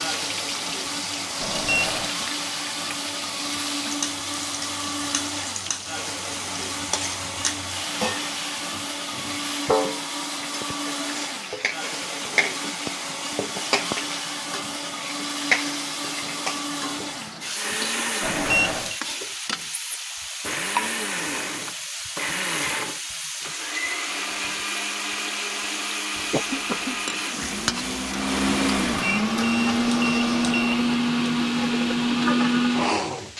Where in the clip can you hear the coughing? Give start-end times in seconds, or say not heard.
26.1-27.1.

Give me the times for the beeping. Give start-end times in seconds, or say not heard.
1.4-2.1, 18.2-19.0, 28.9-30.8.